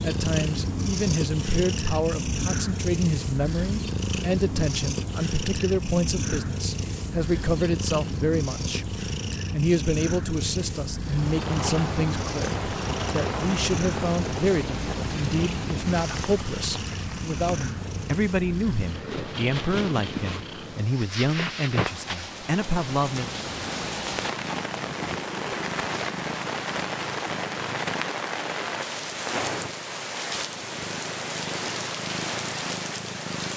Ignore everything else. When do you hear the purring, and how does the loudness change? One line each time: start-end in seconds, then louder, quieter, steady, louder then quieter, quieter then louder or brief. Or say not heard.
0.0-33.5 quieter.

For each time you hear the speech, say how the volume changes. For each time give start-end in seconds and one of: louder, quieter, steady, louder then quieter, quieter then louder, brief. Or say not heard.
0.0-23.3 steady.